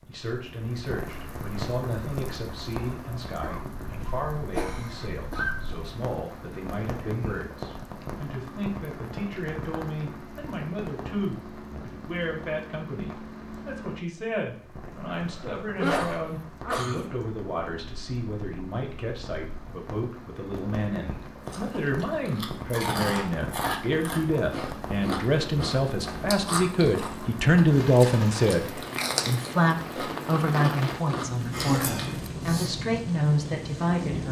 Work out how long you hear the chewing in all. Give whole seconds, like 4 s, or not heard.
11 s.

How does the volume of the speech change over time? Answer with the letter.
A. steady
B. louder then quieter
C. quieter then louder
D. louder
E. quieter
D.